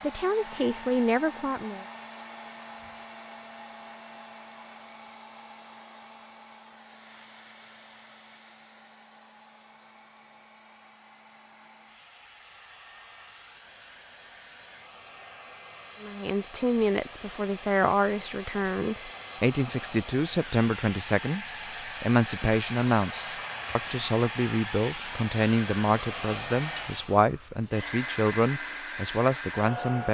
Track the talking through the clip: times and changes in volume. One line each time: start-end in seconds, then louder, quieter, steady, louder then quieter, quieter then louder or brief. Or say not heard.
0.0-1.9 brief
16.0-30.0 steady.